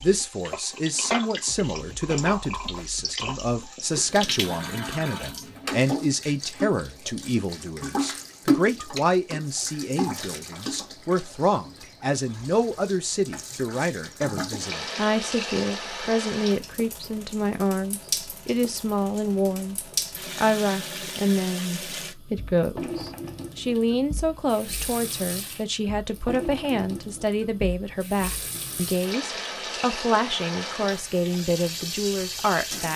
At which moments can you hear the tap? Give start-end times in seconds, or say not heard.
0.0-32.9.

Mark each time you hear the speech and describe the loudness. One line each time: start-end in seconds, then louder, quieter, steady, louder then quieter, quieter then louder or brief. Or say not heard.
0.0-32.9 steady.